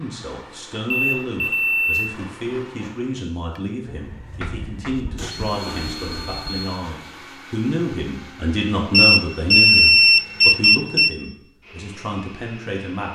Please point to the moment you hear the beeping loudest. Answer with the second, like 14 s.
10 s.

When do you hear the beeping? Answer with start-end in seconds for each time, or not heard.
0.9-2.0, 4.4-6.8, 8.9-11.1.